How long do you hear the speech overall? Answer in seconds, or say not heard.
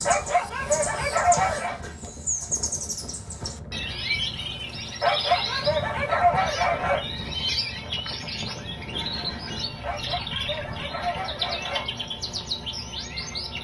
not heard.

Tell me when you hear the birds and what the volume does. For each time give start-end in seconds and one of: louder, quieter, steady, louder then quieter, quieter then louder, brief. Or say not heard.
0.0-13.5 steady.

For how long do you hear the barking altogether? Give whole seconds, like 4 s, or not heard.
6 s.